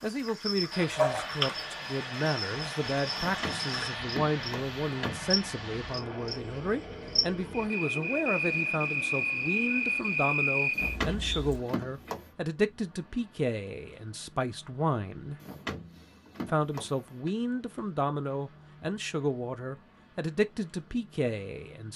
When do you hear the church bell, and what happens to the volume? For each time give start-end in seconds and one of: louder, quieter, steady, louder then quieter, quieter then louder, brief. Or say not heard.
not heard.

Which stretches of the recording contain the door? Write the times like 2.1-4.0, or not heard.
3.1-5.3, 10.7-12.3, 15.4-17.3.